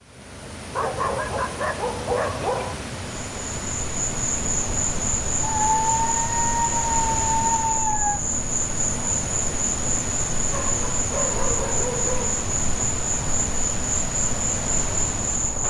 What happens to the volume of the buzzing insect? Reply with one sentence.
The loudness of the buzzing insect stays about the same.